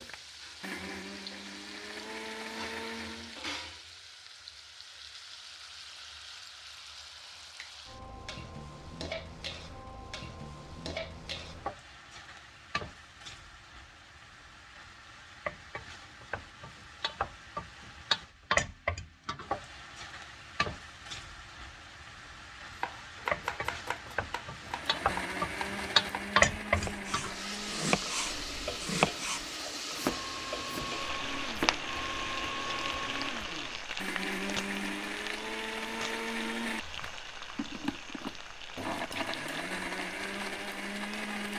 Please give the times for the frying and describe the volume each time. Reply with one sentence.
The frying can be heard from 0.0 to 41.5 s, getting louder then quieter.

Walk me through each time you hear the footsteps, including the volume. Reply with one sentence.
The footsteps can't be heard in this clip.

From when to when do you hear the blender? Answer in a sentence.
You can hear the blender from 0.0 to 3.4 s and from 24.6 to 41.5 s.